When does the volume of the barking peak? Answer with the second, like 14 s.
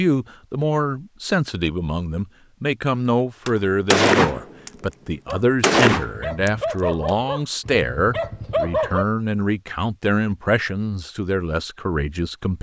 9 s.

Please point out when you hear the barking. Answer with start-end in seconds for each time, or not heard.
5.2-9.1.